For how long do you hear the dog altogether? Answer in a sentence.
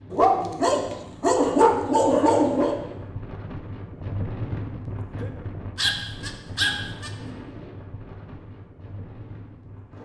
The dog can be heard for 4 seconds in total.